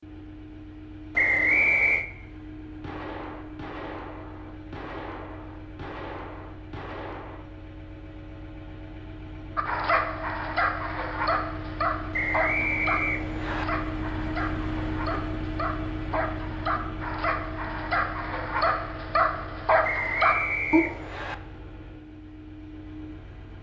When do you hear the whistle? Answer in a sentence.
The whistle can be heard from 1.1 to 2.0 s, from 12.1 to 13.7 s and from 19.8 to 21.4 s.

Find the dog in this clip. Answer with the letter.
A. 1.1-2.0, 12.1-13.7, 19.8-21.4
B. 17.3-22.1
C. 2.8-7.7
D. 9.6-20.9
D.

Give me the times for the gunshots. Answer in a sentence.
You can hear the gunshots from 2.8 to 7.7 s.